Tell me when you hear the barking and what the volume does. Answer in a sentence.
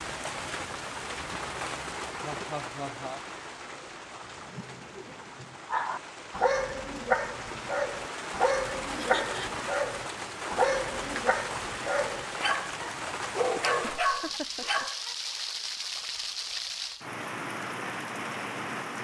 The barking can be heard from 4.2 to 15.2 s, at a steady volume.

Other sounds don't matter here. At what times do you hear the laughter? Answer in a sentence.
The laughter can be heard from 2.2 to 3.2 s, from 8.9 to 9.7 s and from 13.8 to 14.8 s.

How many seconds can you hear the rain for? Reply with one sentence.
The rain can be heard for 19 seconds in total.